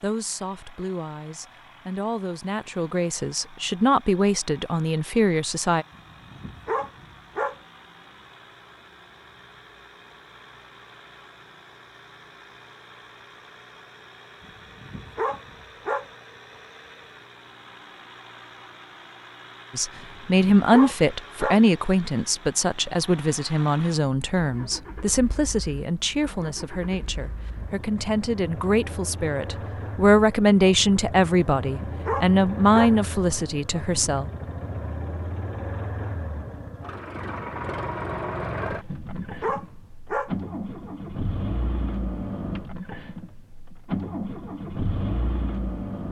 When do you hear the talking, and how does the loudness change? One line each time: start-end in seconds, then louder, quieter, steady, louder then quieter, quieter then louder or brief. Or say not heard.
0.0-5.8 louder
19.8-34.3 quieter then louder.